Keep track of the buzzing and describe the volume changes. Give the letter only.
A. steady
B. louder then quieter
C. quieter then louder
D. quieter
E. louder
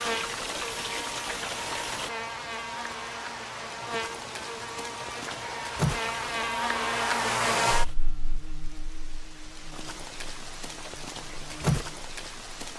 B.